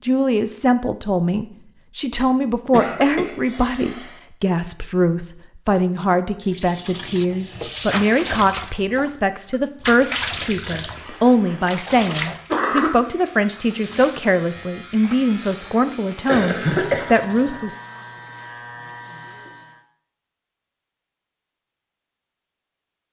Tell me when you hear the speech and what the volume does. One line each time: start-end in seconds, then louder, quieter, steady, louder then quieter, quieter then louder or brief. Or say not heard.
0.0-17.8 steady.